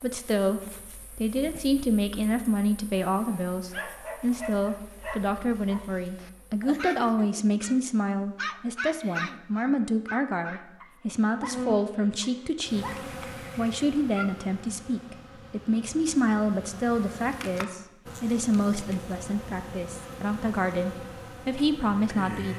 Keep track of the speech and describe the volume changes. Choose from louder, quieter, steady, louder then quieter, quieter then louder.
steady.